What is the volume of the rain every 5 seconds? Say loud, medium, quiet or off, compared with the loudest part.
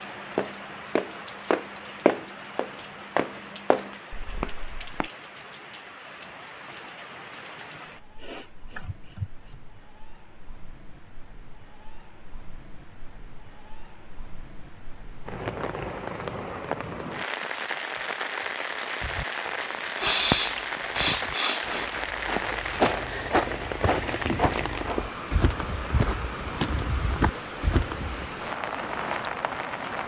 medium, quiet, quiet, loud, loud, loud.